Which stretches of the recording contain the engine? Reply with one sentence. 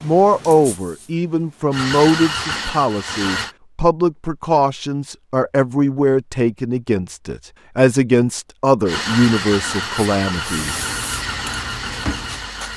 You can hear the engine from 1.7 to 3.5 s and from 8.8 to 12.7 s.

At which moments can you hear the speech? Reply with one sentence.
You can hear the speech from 0.0 to 10.8 s.